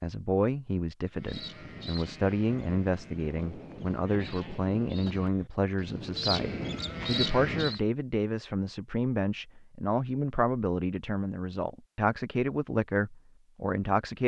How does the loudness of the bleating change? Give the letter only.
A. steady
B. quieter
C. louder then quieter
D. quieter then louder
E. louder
E.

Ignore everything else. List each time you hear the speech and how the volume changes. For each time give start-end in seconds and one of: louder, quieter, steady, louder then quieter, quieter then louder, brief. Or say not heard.
0.0-14.2 steady.